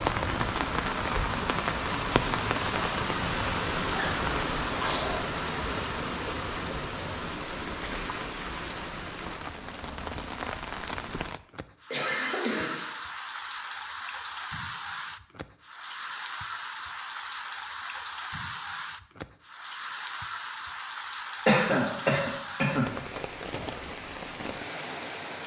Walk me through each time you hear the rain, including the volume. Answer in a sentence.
You can hear the rain from 0.0 to 25.4 s, getting quieter.